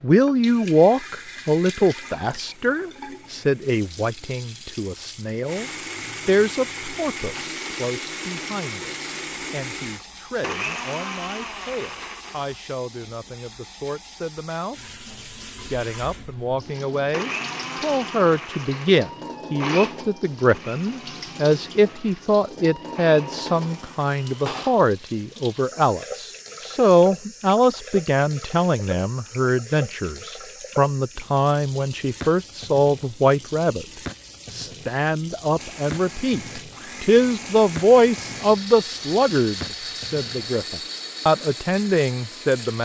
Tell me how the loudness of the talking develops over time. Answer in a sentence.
The loudness of the talking goes down, then up.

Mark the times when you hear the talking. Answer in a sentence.
You can hear the talking from 0.0 to 14.8 s, from 15.7 to 33.9 s and from 34.5 to 42.7 s.